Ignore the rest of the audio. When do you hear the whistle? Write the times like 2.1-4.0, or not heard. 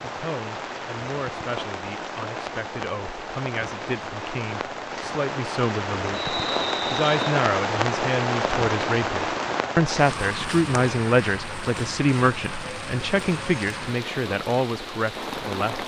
6.1-7.3.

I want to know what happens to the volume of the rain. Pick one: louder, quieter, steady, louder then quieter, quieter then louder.
louder then quieter.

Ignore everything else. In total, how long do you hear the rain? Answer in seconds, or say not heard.
16 s.